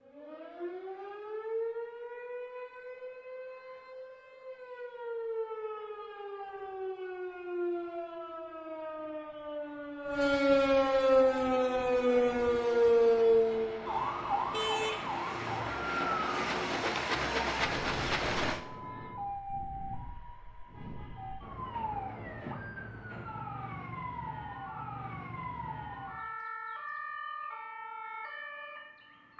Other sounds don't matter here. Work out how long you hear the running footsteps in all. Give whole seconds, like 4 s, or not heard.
not heard.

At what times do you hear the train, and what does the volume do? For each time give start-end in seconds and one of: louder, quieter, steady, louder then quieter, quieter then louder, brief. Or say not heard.
11.1-18.6 louder.